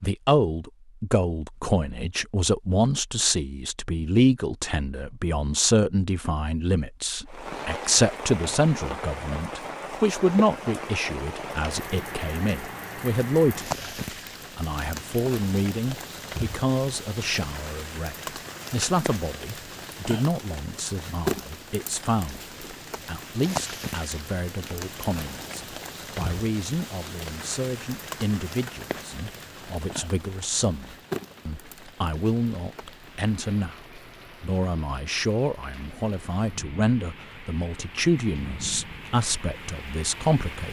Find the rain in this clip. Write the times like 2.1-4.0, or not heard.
7.2-40.6.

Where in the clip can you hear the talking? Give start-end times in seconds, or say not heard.
0.0-40.6.